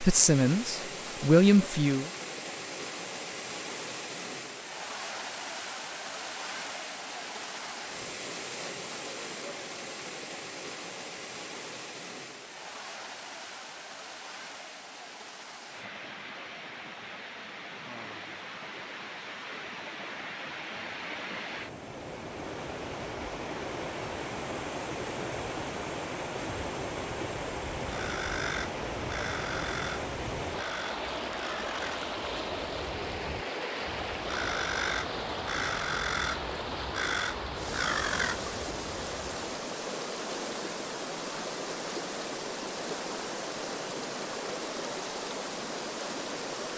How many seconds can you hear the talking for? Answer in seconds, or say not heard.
2 s.